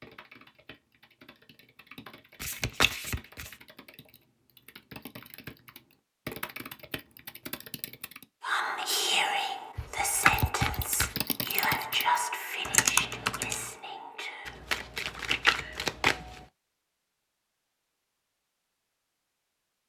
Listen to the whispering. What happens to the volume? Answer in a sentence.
The loudness of the whispering goes down.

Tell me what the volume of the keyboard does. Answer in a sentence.
The volume of the keyboard goes up.